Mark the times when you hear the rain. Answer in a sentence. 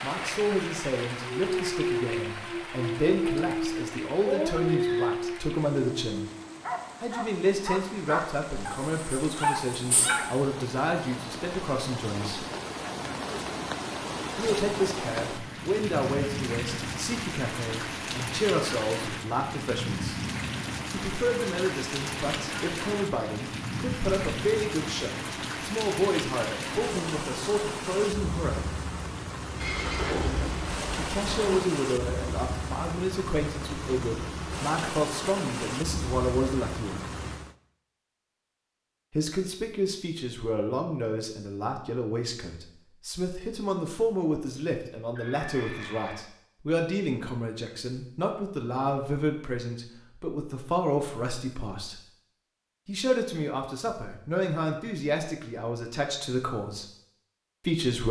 The rain can be heard from 0.0 to 37.5 s.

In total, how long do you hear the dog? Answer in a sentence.
You can hear the dog for 9 seconds altogether.